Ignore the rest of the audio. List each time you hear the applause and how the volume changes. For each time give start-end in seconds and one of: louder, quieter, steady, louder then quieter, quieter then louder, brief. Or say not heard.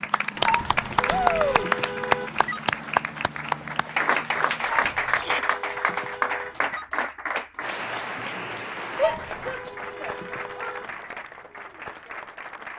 0.0-12.7 quieter.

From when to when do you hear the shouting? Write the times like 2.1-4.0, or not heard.
1.1-1.6, 5.1-5.5, 8.9-10.8.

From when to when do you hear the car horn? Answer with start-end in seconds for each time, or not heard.
0.3-2.6, 4.5-6.8, 8.9-11.2.